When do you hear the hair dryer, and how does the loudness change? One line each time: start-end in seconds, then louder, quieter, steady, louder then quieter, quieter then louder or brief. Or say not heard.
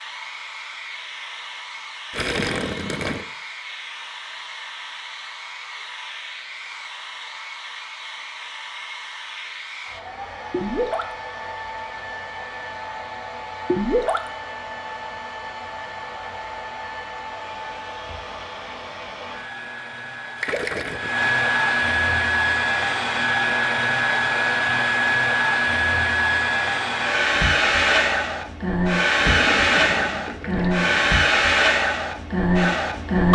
0.0-33.3 louder.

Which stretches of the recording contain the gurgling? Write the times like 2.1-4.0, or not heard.
2.1-3.2, 10.5-11.2, 13.7-14.3, 20.4-21.3, 29.2-31.2.